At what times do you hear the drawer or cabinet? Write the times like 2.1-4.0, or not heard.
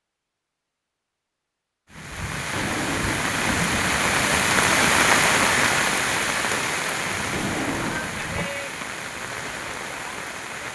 2.5-3.9, 7.3-8.5.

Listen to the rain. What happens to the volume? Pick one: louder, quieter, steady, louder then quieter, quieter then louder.
louder then quieter.